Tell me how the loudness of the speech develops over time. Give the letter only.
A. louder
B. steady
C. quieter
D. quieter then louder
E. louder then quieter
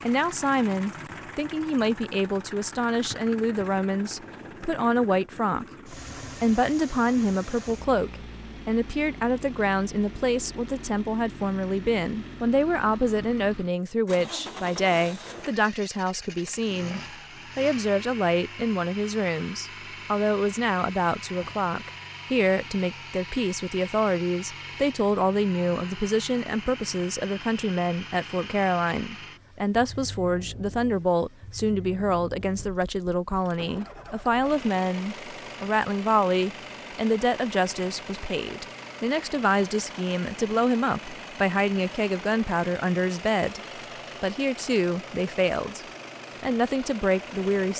B.